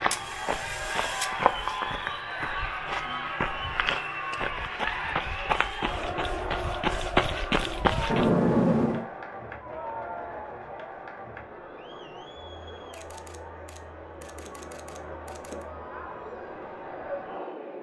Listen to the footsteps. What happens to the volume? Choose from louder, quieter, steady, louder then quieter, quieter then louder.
quieter then louder.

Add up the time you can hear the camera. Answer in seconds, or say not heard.
5 s.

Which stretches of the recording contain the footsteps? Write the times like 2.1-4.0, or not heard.
0.0-8.3.